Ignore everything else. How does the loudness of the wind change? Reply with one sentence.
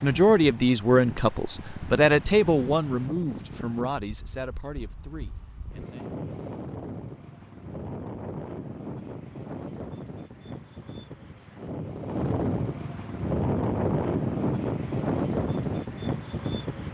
The volume of the wind goes up.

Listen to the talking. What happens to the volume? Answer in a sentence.
The loudness of the talking goes down.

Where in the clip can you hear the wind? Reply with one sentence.
The wind can be heard from 0.0 to 16.9 s.